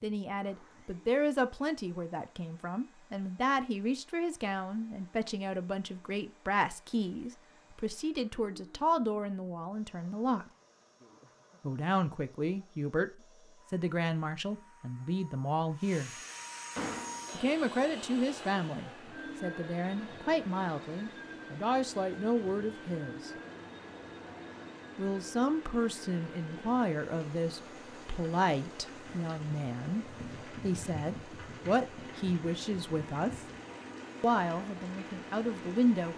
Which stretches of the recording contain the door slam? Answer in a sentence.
The door slam can be heard from 16.1 to 17.2 s.